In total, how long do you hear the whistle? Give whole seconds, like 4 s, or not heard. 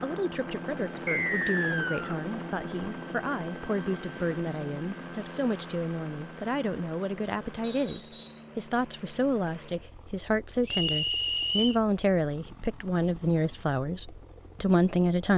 3 s.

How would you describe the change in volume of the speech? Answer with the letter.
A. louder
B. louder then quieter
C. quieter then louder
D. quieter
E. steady
A.